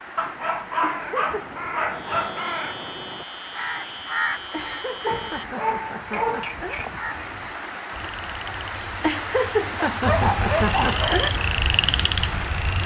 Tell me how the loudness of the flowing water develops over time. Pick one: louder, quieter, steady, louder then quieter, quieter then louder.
louder.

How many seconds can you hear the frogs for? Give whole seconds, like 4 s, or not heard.
11 s.